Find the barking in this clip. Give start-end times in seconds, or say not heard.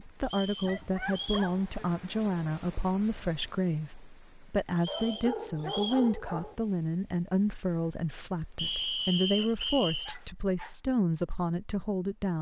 0.6-1.8, 4.8-6.5, 9.2-10.8.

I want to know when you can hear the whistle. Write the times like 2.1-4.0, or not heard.
0.2-1.5, 4.8-6.0, 8.6-10.2.